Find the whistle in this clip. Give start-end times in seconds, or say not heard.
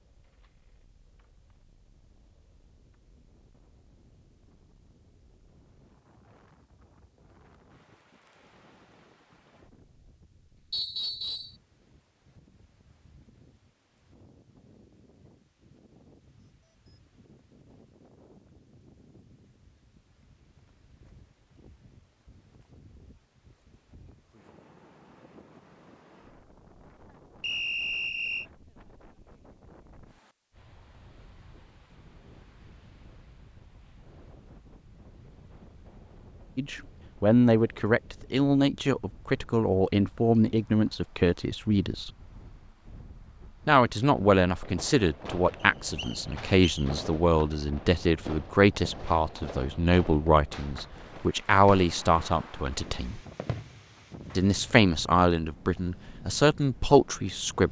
10.7-11.6, 27.4-28.4, 45.6-46.9.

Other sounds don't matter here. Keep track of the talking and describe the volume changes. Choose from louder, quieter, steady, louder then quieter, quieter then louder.
steady.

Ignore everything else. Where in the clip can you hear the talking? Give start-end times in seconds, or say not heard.
36.5-42.1, 43.6-53.2, 54.4-57.6.